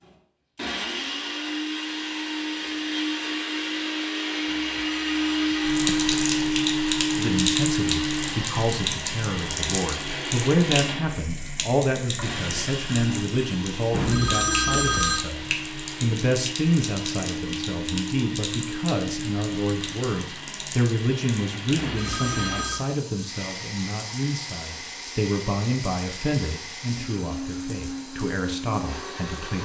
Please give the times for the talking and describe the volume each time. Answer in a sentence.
You can hear the talking from 7.2 to 29.6 s, at a steady volume.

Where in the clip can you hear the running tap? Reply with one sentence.
The running tap can be heard from 5.6 to 29.6 s.